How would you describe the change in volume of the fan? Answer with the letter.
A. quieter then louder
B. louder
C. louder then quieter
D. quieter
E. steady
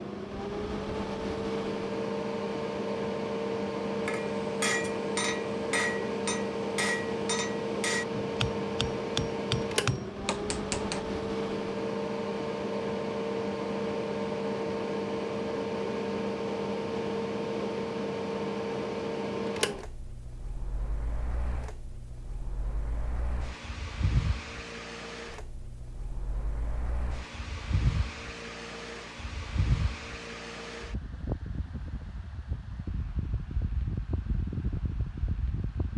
D.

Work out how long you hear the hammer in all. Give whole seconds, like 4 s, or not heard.
7 s.